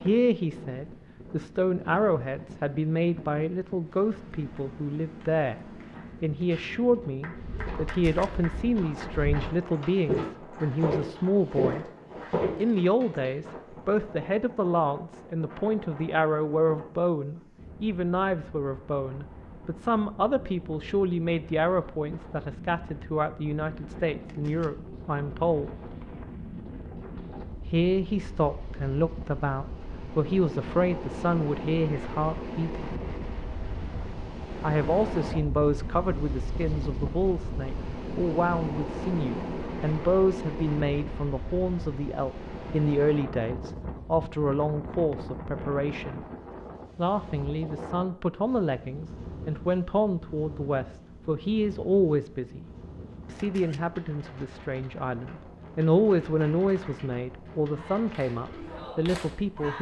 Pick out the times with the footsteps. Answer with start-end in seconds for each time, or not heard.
7.3-12.7.